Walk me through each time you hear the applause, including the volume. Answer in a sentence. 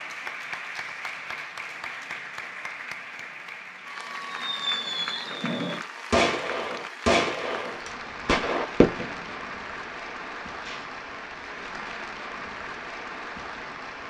You can hear the applause from 0.0 to 14.0 s, at a steady volume.